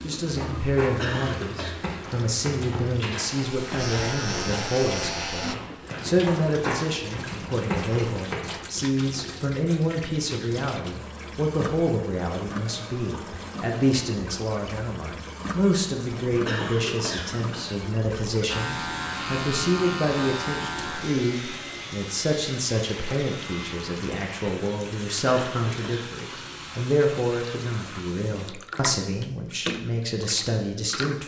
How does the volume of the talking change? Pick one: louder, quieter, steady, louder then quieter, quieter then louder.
steady.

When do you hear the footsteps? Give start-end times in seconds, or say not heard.
0.2-8.6.